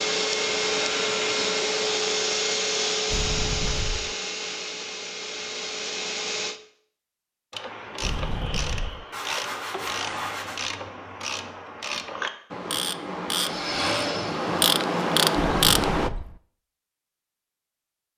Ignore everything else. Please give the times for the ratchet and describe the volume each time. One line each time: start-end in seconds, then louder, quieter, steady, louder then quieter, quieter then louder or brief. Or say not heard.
7.5-16.1 louder.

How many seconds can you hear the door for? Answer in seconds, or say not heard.
3 s.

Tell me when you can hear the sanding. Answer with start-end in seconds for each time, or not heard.
9.1-10.7.